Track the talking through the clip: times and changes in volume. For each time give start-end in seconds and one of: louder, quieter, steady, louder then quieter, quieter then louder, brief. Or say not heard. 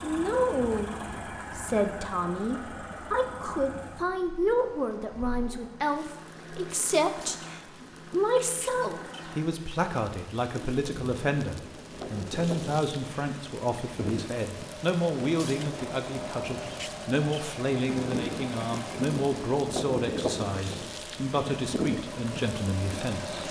0.0-23.4 steady.